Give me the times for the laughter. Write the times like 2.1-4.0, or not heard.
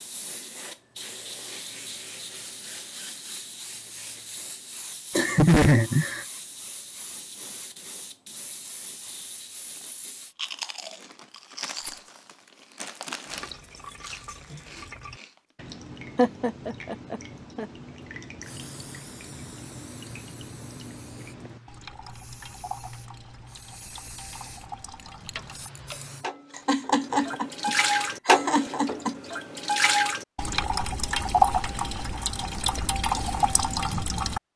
5.1-6.2, 16.1-17.6, 26.6-29.1.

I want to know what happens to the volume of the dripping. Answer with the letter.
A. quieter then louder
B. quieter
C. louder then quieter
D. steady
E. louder
E.